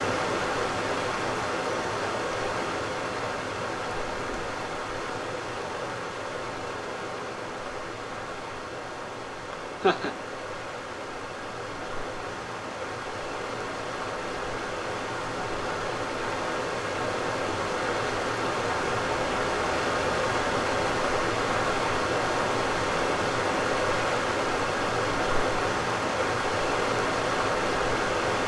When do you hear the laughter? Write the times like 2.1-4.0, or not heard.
9.5-10.2.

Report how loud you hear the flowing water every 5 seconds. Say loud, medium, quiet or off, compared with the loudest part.
loud, medium, medium, loud, loud, loud.